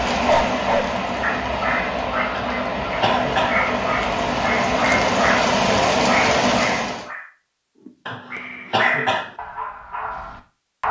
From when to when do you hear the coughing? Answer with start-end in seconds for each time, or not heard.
2.3-3.6, 8.1-9.3.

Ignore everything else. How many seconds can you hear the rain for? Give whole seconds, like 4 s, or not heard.
7 s.